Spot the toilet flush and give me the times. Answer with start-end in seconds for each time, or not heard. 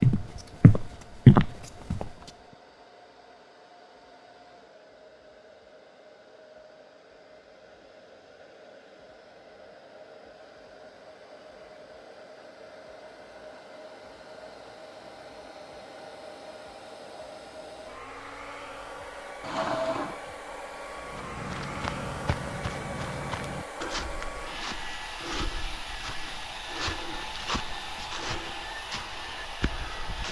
19.4-20.2.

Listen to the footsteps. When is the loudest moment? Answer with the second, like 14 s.
1 s.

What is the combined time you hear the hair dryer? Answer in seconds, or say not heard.
30 s.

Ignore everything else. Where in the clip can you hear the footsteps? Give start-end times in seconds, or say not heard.
0.0-2.1, 21.1-30.2.